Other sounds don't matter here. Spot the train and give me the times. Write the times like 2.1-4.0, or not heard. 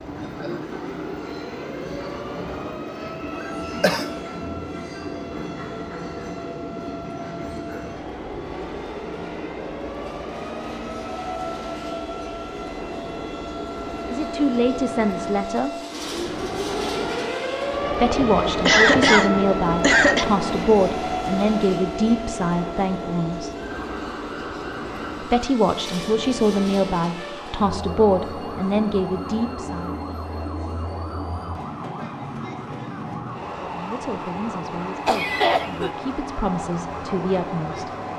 0.0-38.1.